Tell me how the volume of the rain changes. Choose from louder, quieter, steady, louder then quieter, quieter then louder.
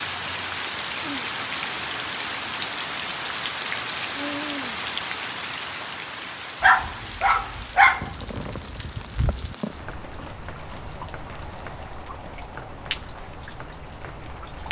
quieter.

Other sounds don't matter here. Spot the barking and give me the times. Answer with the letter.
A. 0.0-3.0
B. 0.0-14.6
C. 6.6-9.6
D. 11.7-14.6
C.